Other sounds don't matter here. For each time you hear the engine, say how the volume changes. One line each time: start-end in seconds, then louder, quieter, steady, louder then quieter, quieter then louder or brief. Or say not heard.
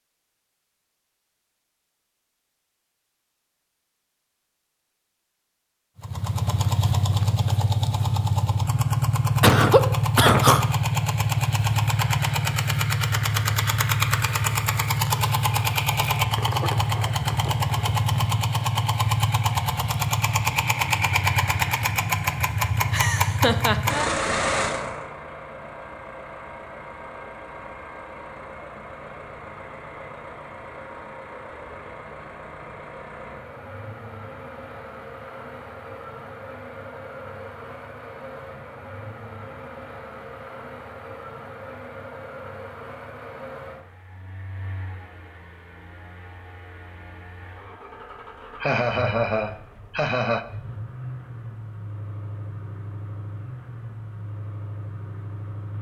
6.0-55.7 quieter.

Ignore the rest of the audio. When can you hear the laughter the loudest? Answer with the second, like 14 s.
10 s.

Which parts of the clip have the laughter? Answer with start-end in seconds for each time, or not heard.
9.4-10.6, 22.9-24.2, 48.6-50.5.